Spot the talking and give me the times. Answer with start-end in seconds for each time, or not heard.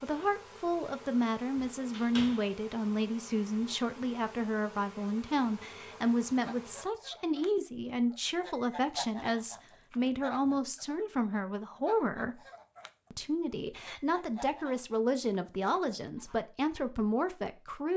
0.0-12.4, 13.1-17.9.